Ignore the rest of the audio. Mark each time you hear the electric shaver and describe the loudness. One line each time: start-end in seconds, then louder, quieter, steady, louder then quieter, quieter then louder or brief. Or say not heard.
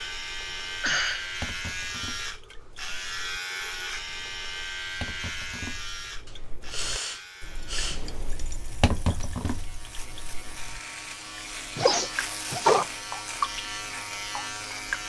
0.0-15.0 quieter then louder.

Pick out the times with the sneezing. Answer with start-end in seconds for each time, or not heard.
0.8-1.3, 6.2-8.1, 11.8-12.8.